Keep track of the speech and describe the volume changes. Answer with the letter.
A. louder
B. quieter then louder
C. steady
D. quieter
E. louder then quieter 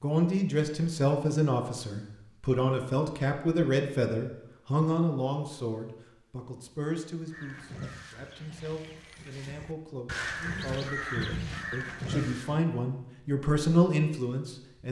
B.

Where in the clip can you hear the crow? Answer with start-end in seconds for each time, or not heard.
7.2-12.6.